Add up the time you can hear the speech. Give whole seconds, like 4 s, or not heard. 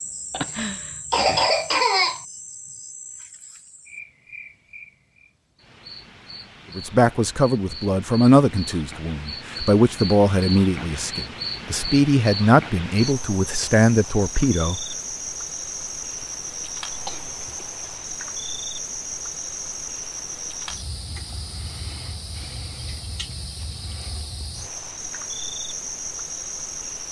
8 s.